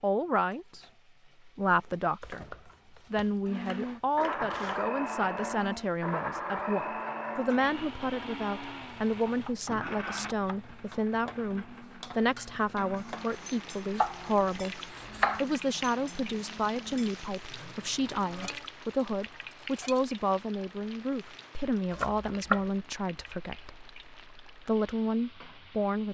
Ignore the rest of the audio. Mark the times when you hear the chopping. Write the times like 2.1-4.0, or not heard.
2.2-4.8, 9.2-10.7, 13.9-15.4, 21.9-22.6.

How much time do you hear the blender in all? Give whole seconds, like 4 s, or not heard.
15 s.